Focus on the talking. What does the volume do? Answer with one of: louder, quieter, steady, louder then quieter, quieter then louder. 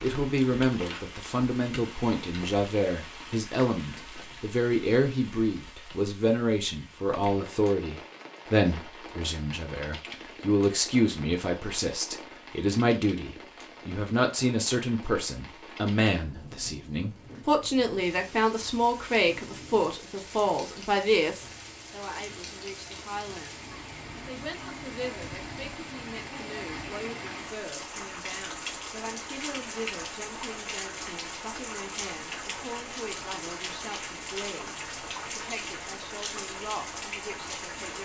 quieter.